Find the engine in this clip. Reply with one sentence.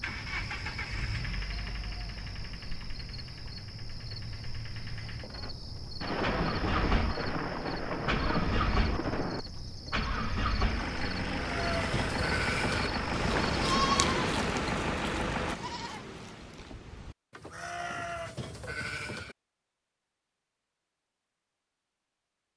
The engine can be heard from 0.0 to 15.6 s.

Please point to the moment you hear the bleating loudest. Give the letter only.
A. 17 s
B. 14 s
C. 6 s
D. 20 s
B.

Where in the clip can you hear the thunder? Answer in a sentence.
The thunder can be heard from 6.0 to 9.4 s.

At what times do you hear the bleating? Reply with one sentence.
You can hear the bleating from 11.3 to 19.4 s.